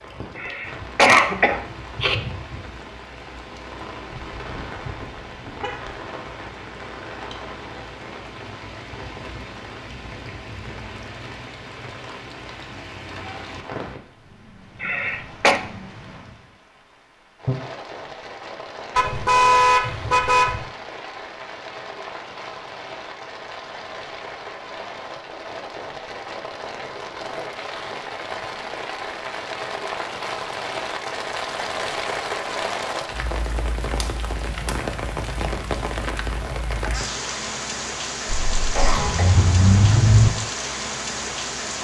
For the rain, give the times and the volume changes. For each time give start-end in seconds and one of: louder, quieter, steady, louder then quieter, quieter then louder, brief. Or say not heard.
0.0-41.7 louder.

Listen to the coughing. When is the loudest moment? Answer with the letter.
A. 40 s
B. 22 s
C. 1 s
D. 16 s
C.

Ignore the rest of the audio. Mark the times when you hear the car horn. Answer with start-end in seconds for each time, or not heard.
4.1-6.0, 18.9-20.6, 38.2-40.3.